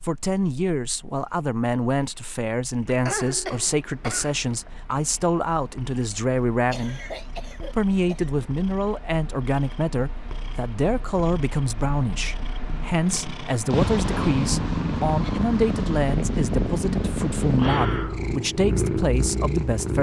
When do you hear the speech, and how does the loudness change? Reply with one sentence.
You can hear the speech from 0.0 to 7.0 s, at a steady volume; and from 7.7 to 19.9 s, at a steady volume.